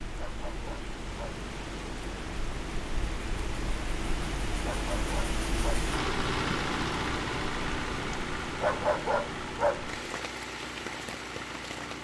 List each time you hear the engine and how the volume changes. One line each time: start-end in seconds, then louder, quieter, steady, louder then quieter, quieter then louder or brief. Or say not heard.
0.0-11.9 louder then quieter.